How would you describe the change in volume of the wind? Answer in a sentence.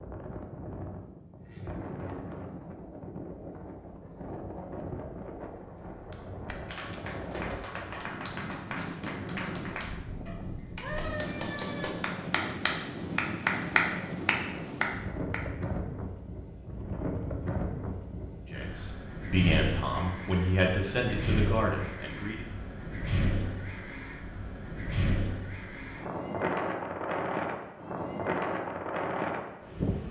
The loudness of the wind goes up.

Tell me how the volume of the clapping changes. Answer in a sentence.
The volume of the clapping goes up.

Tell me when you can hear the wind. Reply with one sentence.
The wind can be heard from 0.0 to 30.0 s.